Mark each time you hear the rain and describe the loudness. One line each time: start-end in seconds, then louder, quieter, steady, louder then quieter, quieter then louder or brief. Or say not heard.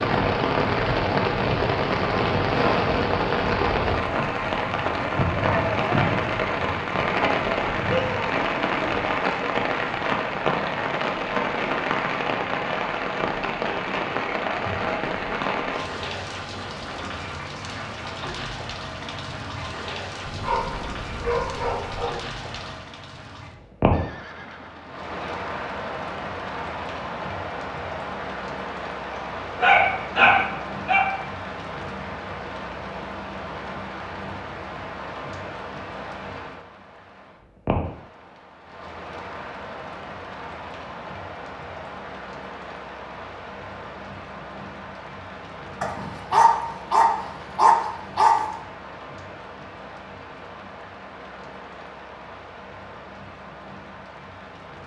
0.0-54.8 quieter.